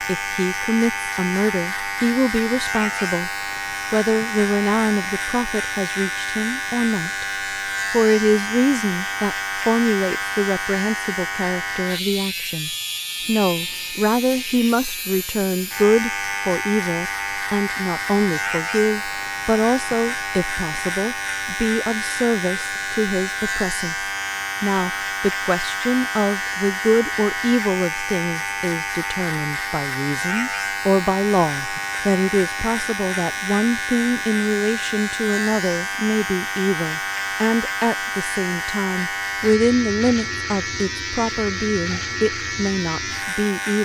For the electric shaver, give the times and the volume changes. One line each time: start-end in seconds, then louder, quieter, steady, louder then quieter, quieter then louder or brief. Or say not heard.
0.0-43.7 steady.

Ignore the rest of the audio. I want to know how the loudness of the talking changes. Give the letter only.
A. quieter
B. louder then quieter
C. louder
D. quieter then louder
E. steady
E.